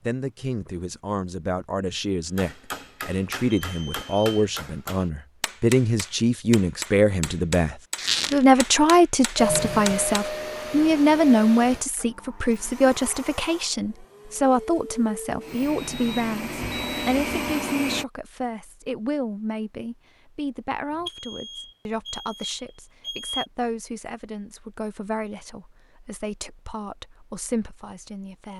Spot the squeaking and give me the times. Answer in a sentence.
The squeaking can be heard from 8.0 to 8.4 s.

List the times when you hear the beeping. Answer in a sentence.
The beeping can be heard from 3.6 to 4.5 s, from 15.6 to 17.1 s and from 21.1 to 23.4 s.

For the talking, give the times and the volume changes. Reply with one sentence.
The talking can be heard from 0.0 to 28.5 s, getting louder then quieter.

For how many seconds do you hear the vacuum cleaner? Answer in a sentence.
You can hear the vacuum cleaner for 9 seconds altogether.